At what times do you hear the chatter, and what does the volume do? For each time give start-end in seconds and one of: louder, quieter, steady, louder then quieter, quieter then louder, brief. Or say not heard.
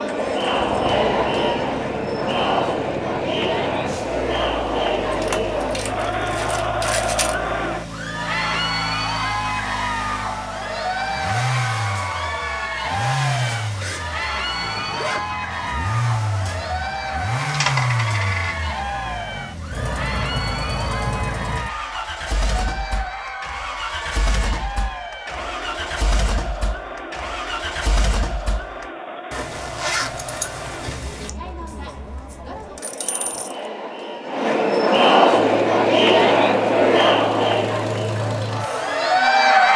0.0-39.7 quieter then louder.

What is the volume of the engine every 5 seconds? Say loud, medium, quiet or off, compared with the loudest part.
medium, medium, loud, loud, loud, loud, off, loud.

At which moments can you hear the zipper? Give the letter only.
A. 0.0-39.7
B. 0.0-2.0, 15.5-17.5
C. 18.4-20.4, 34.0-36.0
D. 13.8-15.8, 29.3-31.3
D.